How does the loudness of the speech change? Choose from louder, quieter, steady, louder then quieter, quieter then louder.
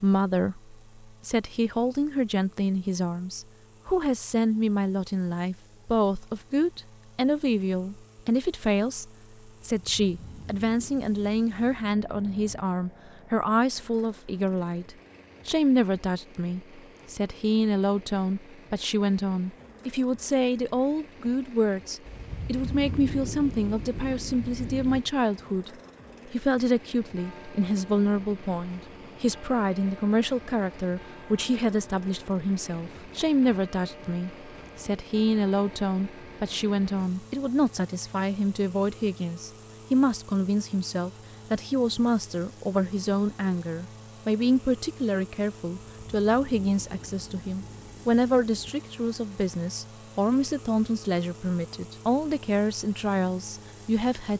steady.